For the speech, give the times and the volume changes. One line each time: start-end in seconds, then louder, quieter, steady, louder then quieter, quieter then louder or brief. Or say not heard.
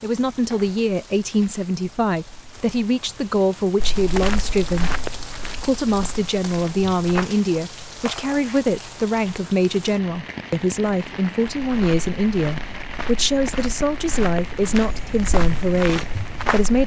0.0-16.8 steady.